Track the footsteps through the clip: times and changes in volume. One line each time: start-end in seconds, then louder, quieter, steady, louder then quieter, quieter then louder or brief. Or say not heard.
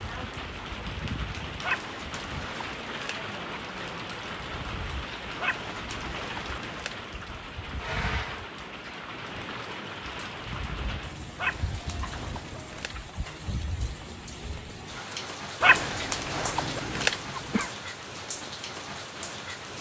not heard.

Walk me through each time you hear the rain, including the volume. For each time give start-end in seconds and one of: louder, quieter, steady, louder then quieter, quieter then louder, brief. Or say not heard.
0.0-19.7 steady.